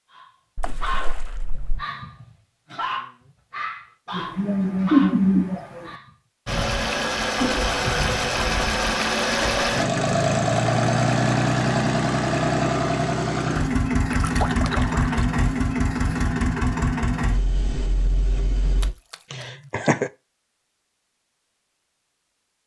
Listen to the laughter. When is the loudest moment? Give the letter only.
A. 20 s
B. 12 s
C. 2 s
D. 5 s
D.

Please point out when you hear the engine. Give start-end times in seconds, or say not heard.
6.5-18.9.